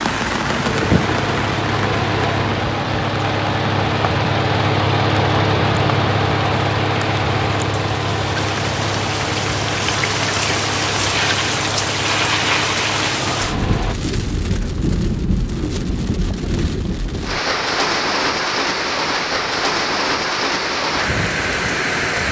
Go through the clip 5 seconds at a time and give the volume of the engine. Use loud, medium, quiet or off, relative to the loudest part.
loud, loud, medium, off, off.